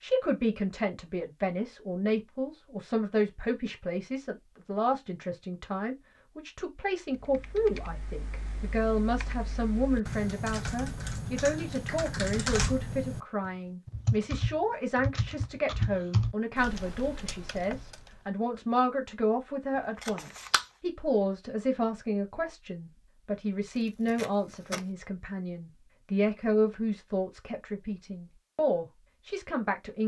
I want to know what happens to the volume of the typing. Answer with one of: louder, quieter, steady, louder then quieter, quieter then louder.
louder.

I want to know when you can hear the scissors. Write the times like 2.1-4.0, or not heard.
20.0-20.6.